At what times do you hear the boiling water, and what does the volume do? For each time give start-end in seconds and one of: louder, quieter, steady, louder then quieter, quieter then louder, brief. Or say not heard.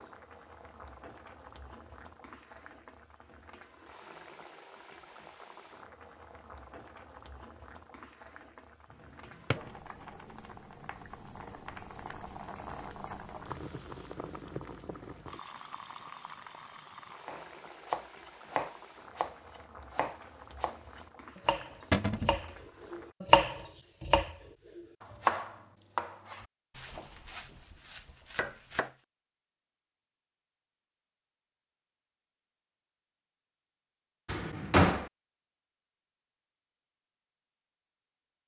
0.0-23.1 louder then quieter.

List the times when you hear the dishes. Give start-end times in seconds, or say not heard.
not heard.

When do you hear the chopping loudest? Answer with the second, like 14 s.
23 s.